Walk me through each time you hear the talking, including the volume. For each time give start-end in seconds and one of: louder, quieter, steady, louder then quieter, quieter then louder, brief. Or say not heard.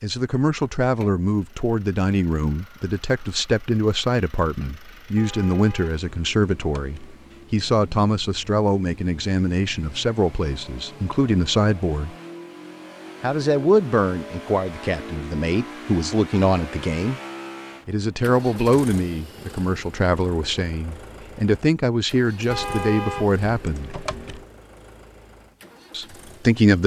0.0-12.2 steady
13.2-17.2 quieter then louder
17.9-23.9 quieter then louder
25.9-26.8 brief.